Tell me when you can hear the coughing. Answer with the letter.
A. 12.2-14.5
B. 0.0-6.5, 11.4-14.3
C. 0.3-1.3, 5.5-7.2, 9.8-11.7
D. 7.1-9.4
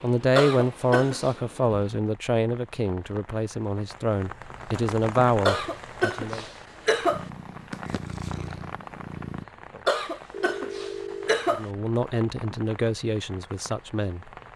C.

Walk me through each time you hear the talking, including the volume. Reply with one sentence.
The talking can be heard from 0.0 to 6.5 s, getting quieter then louder; and briefly from 11.4 to 14.3 s.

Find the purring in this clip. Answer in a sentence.
You can hear the purring from 7.1 to 9.4 s.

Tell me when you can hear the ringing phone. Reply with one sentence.
You can hear the ringing phone from 10.3 to 11.3 s.